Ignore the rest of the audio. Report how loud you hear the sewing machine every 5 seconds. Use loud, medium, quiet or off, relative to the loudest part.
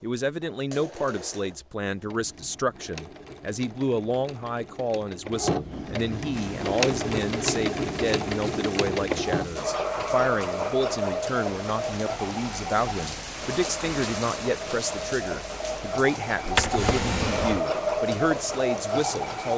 quiet, loud, loud, loud.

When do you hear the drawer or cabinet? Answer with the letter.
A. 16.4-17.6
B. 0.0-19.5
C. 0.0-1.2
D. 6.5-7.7
A.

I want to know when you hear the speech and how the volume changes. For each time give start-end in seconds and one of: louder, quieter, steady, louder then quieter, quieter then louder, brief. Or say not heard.
0.0-19.5 steady.